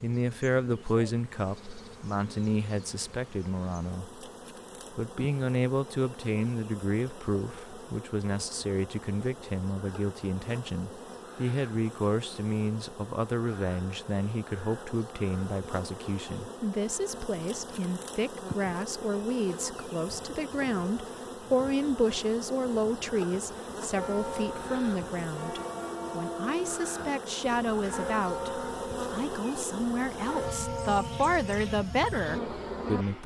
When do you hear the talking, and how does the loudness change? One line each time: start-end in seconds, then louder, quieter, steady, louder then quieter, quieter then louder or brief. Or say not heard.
0.0-4.2 quieter
4.9-33.2 steady.